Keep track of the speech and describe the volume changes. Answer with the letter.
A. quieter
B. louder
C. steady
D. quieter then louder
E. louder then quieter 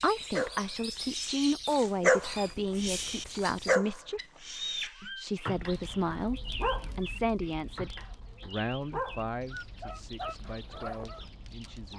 A.